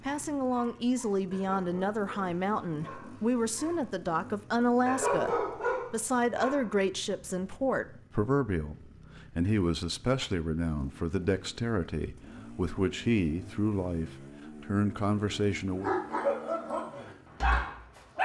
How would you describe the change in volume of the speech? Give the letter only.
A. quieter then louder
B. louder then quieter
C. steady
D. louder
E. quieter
C.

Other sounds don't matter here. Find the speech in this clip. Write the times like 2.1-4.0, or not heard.
0.0-15.9.